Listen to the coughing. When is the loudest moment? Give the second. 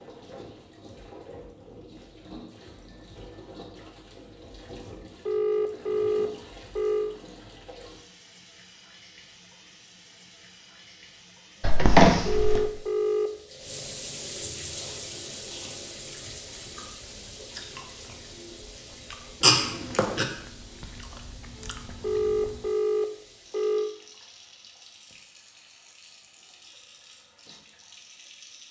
12 s.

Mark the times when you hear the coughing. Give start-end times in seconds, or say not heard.
11.6-12.7, 19.4-20.2.